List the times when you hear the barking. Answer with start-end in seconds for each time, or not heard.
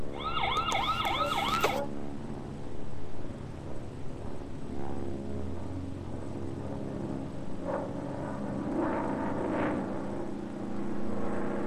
1.1-1.9.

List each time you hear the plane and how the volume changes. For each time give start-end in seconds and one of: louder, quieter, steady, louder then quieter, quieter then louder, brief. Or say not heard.
0.0-11.6 louder.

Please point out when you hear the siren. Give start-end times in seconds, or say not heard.
0.0-1.8.